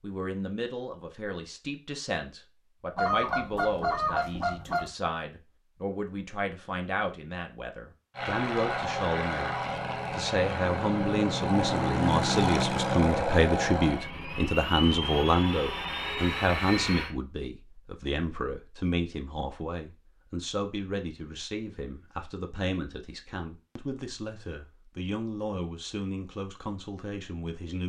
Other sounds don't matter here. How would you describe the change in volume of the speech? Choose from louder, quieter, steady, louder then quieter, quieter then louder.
louder then quieter.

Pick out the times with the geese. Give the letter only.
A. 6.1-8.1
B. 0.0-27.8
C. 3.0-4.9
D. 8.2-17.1
C.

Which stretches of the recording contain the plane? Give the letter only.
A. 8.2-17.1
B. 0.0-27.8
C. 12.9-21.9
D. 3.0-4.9
A.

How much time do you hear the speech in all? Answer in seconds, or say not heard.
28 s.